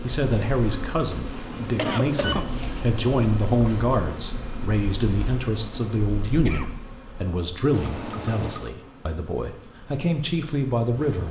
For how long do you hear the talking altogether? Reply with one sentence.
The talking can be heard for 11 seconds in total.